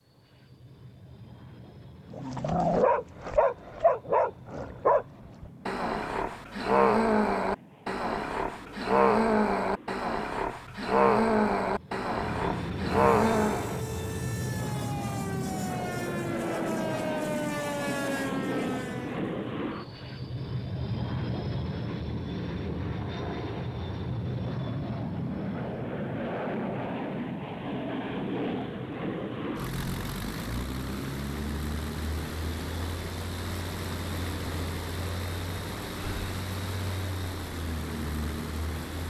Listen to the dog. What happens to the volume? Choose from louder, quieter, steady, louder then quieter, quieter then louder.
steady.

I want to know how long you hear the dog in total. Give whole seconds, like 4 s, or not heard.
12 s.